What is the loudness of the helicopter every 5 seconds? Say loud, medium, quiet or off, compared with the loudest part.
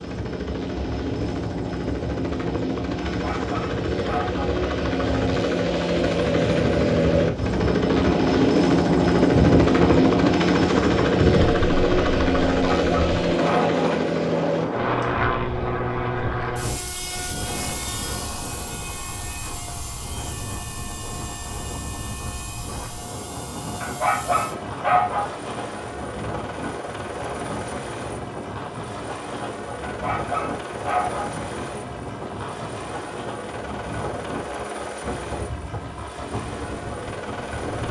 medium, loud, loud, medium, quiet, quiet, quiet, quiet.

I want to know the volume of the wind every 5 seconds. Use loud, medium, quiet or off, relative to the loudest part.
medium, loud, loud, medium, medium, medium, medium, medium.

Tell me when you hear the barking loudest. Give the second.
25 s.